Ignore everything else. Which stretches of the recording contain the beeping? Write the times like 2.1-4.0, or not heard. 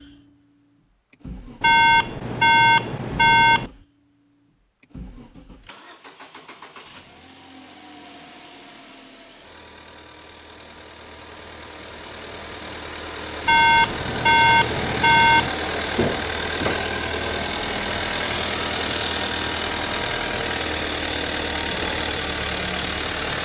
1.6-3.7, 13.4-15.5.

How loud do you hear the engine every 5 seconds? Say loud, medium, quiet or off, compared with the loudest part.
quiet, quiet, medium, loud, loud.